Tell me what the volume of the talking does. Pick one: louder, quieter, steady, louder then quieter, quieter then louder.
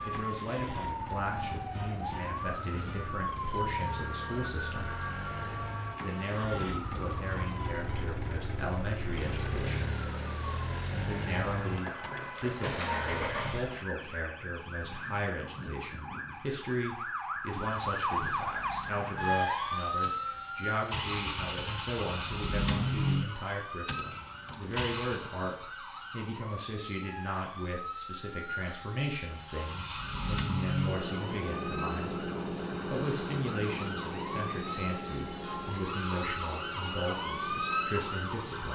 steady.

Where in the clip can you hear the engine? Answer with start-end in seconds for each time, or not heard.
0.0-13.9, 17.5-25.3, 29.3-38.7.